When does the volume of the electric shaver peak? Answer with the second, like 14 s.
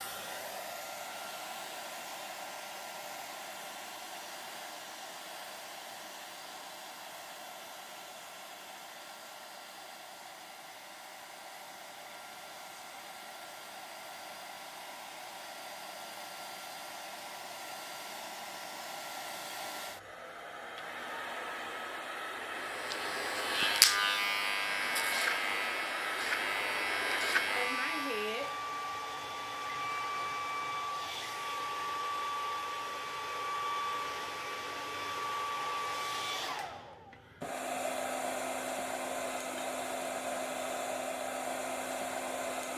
24 s.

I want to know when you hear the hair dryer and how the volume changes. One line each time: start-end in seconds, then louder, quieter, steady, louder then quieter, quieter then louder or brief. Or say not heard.
0.0-42.7 louder.